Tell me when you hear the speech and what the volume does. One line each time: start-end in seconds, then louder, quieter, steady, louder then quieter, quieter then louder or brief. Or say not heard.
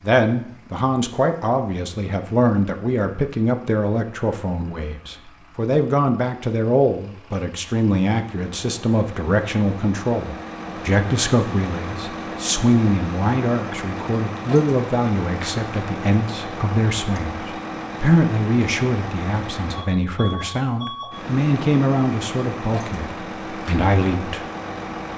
0.0-24.5 steady.